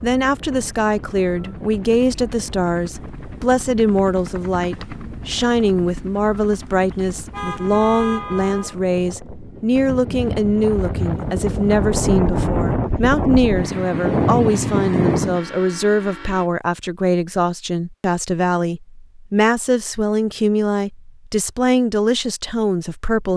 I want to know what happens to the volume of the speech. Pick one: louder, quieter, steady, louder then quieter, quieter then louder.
steady.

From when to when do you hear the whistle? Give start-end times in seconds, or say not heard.
not heard.